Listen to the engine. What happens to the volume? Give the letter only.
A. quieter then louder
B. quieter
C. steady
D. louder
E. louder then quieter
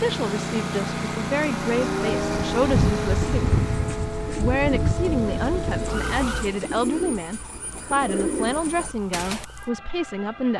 B.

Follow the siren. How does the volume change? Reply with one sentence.
The volume of the siren goes down.